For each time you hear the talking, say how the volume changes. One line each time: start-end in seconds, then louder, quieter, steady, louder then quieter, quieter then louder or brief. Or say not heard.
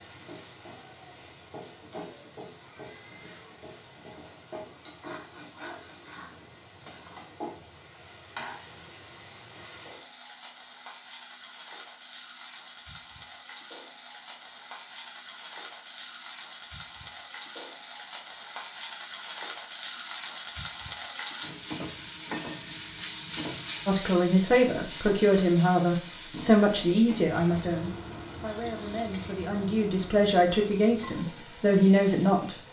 23.9-32.5 quieter then louder.